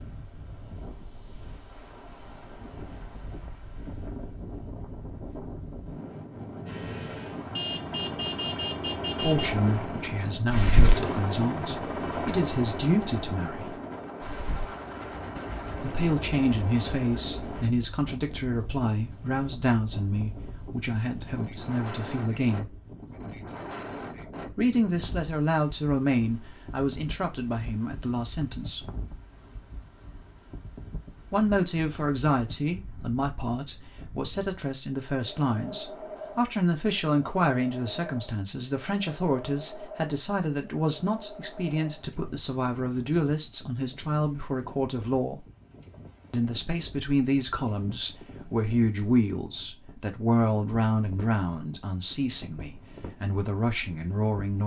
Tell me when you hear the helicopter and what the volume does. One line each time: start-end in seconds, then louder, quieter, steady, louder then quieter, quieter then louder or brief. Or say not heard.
6.7-17.6 louder then quieter.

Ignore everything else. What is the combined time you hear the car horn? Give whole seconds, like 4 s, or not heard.
2 s.